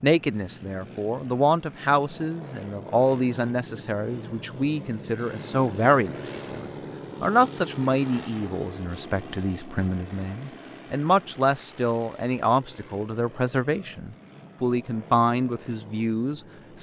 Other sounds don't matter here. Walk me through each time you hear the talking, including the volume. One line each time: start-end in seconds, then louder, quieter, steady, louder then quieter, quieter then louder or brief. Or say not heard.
0.0-16.7 steady.